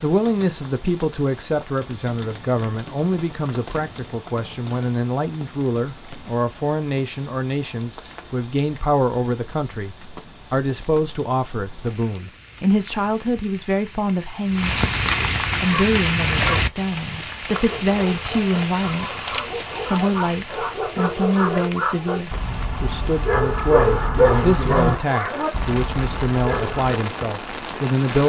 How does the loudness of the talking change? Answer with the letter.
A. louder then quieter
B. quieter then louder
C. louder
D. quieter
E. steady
E.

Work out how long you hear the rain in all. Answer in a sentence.
The rain can be heard for 28 seconds in total.